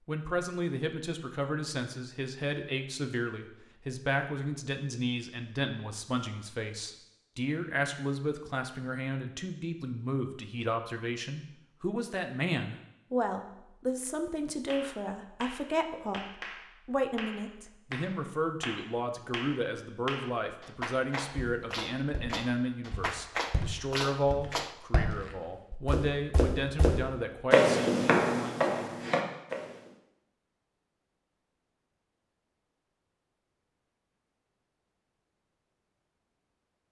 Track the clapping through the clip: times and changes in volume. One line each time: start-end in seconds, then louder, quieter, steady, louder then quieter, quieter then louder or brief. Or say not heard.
14.7-24.8 louder.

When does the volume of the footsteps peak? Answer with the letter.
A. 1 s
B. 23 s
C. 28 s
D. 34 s
C.